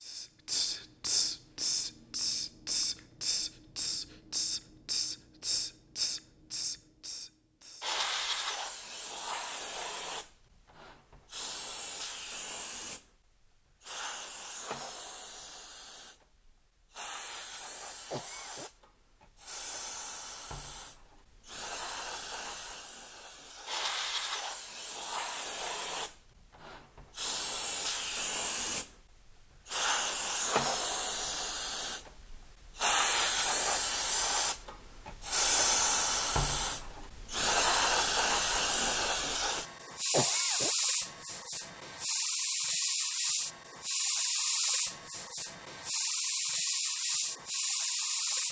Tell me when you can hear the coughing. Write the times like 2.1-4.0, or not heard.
18.1-18.7, 40.1-40.8.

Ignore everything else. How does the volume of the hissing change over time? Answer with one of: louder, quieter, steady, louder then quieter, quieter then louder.
quieter then louder.